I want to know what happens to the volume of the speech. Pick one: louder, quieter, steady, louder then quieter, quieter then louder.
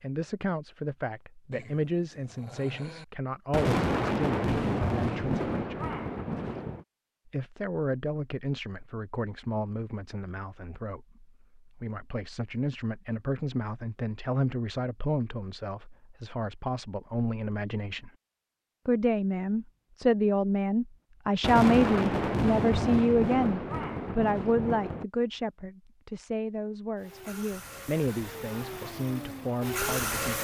louder then quieter.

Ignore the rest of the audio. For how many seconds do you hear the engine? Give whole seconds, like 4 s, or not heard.
3 s.